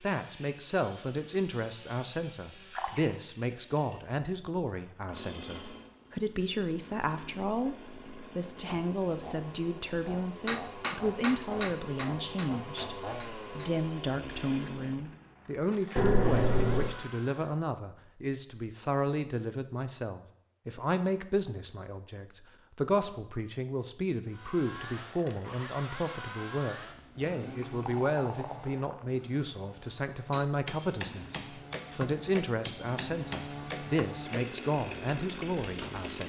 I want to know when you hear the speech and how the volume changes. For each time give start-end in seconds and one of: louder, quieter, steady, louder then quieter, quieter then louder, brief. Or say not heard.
0.0-36.2 steady.